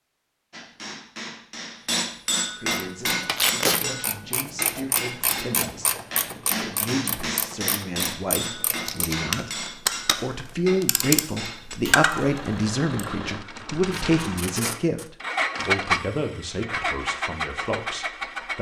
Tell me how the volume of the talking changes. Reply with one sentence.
The loudness of the talking goes up, then down.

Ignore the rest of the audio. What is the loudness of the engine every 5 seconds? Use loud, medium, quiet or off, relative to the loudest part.
off, off, medium, loud.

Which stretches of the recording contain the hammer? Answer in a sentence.
You can hear the hammer from 0.5 to 12.0 s.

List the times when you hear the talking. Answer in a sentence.
The talking can be heard from 2.5 to 18.5 s.